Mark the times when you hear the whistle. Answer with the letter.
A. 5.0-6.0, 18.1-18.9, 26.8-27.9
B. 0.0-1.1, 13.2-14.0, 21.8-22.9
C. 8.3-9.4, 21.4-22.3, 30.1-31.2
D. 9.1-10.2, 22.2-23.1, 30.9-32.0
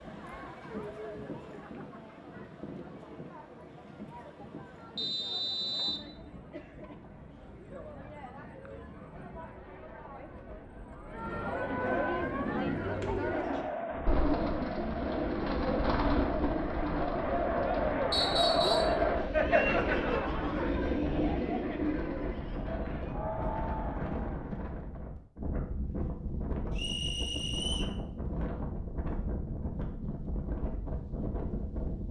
A.